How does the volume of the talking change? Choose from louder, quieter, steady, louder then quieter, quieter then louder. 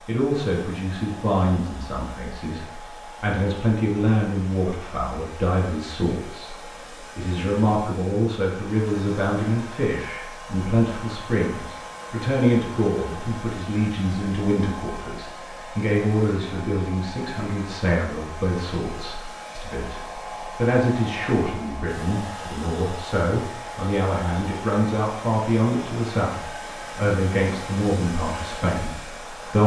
steady.